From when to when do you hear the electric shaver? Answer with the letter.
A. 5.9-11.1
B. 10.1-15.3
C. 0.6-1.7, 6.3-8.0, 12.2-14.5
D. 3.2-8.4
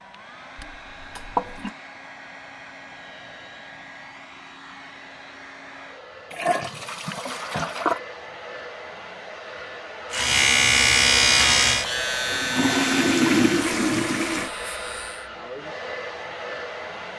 B.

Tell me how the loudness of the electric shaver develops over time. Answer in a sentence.
The volume of the electric shaver goes down.